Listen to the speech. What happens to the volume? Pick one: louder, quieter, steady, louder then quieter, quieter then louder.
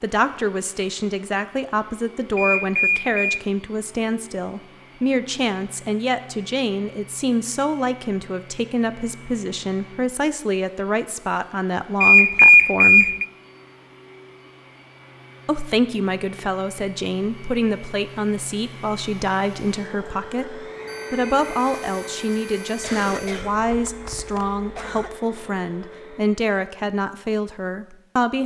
steady.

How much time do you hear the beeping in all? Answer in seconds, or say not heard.
5 s.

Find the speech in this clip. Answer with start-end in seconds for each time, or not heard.
0.0-13.2, 15.4-28.4.